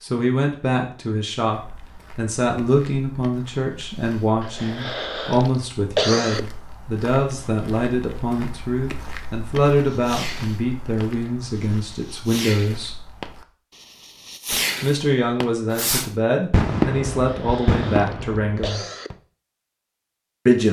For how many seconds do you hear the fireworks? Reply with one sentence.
You can hear the fireworks for 9 seconds altogether.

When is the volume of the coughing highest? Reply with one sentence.
The loudest moment of the coughing is at 6 seconds.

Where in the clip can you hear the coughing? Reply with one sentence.
The coughing can be heard from 4.4 to 6.4 s and from 17.2 to 19.1 s.